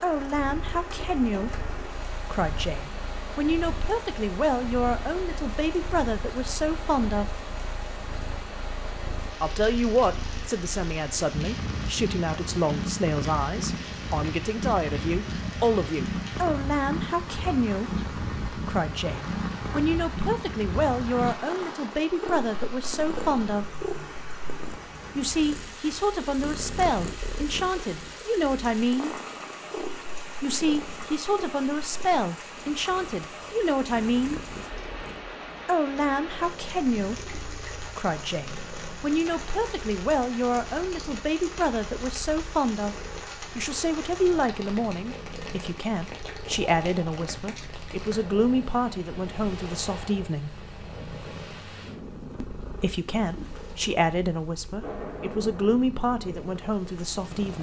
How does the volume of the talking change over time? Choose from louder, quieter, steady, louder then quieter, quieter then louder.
steady.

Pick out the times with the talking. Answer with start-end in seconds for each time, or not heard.
0.0-7.4, 9.4-23.8, 25.1-29.1, 30.4-34.4, 35.6-50.5, 52.6-57.5.